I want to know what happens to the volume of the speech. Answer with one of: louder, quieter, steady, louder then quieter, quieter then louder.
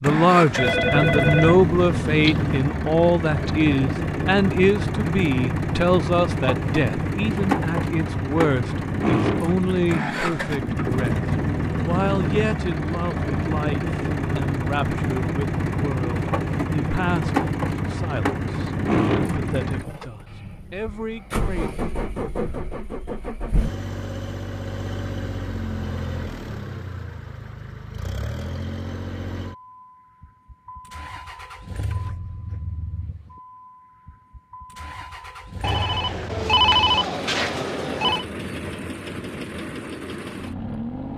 quieter.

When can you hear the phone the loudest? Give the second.
37 s.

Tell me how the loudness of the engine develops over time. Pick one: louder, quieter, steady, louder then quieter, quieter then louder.
quieter.